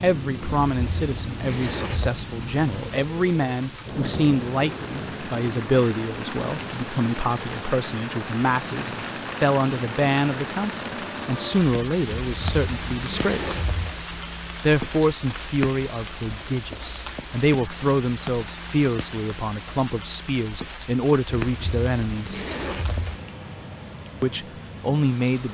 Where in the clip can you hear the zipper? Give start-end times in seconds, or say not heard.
0.5-2.1, 12.2-13.9, 21.4-23.2.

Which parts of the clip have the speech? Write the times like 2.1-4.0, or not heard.
0.0-13.6, 14.6-22.4, 24.2-25.4.